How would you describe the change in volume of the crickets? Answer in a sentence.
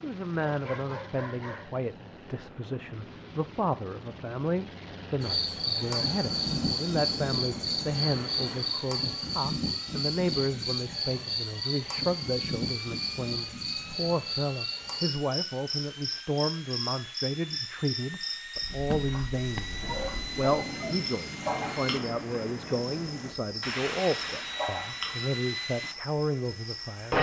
The volume of the crickets goes down.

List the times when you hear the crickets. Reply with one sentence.
You can hear the crickets from 5.2 to 27.1 s.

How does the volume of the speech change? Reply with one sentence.
The volume of the speech stays about the same.